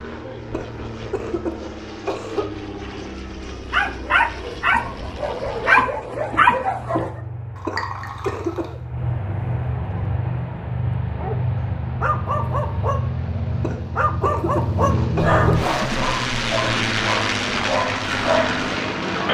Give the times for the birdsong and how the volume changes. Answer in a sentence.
The birdsong can't be heard in this clip.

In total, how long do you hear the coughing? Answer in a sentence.
You can hear the coughing for 5 seconds altogether.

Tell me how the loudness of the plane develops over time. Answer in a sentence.
The loudness of the plane goes up.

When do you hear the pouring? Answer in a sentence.
The pouring can be heard from 7.5 to 8.7 s.